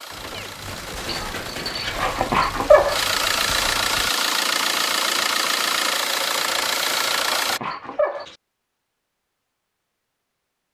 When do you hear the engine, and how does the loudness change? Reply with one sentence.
You can hear the engine from 0.0 to 7.6 s, getting louder.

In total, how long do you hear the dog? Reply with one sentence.
You can hear the dog for 4 seconds altogether.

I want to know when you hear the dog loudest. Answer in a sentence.
The volume of the dog peaks at 3 seconds.